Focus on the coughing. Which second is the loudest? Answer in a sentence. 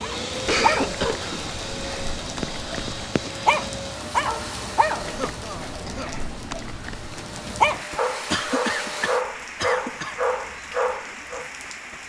The volume of the coughing peaks at 1 second.